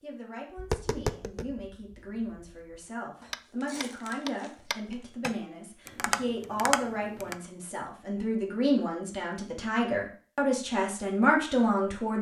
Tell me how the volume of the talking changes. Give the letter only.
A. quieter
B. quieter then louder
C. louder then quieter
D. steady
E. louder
E.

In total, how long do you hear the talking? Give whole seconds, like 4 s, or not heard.
12 s.